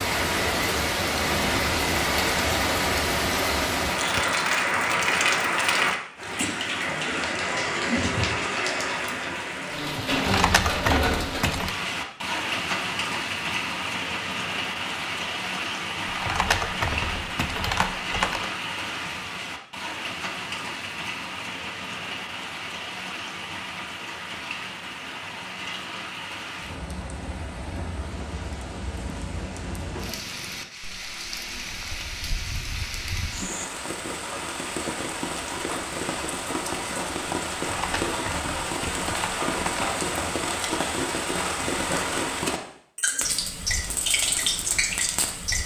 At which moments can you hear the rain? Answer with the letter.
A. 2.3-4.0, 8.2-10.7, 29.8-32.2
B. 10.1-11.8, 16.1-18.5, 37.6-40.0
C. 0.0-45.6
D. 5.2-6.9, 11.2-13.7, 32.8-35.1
C.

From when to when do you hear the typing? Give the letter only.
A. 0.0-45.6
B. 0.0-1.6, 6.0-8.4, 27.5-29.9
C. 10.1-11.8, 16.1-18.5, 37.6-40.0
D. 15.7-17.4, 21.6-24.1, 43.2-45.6
C.